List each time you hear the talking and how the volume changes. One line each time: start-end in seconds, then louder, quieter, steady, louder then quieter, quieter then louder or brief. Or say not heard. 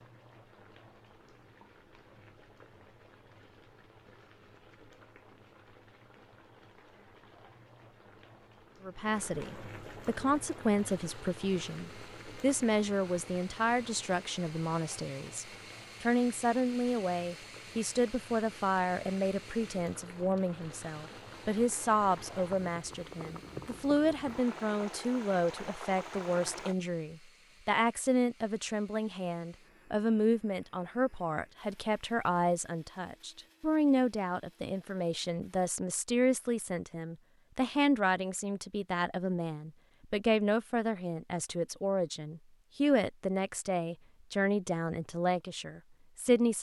8.8-46.5 steady.